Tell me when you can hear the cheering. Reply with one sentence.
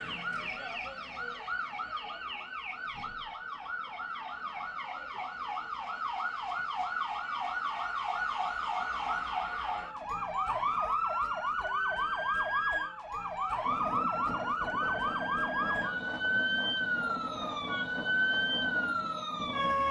The cheering can't be heard in this clip.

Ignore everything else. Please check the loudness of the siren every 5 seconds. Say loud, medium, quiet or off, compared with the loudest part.
medium, loud, loud, loud.